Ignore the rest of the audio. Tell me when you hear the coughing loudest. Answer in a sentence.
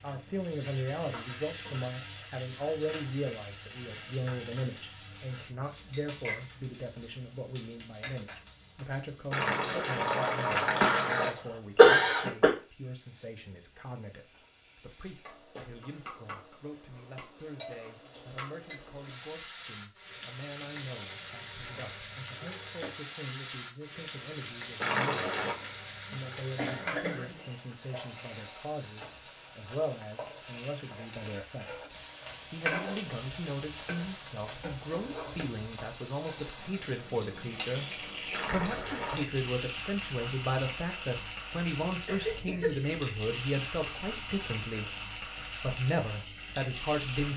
The volume of the coughing peaks at 12 seconds.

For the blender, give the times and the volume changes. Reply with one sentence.
The blender can't be heard in this clip.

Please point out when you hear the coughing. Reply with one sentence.
The coughing can be heard from 10.5 to 11.1 s, from 11.8 to 12.5 s, from 25.8 to 27.3 s and from 42.0 to 43.0 s.